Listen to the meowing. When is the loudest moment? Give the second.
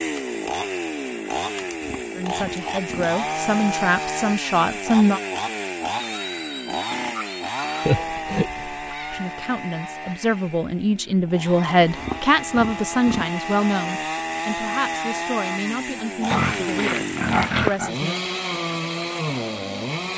8 s.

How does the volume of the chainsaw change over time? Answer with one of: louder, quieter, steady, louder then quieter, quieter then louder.
quieter then louder.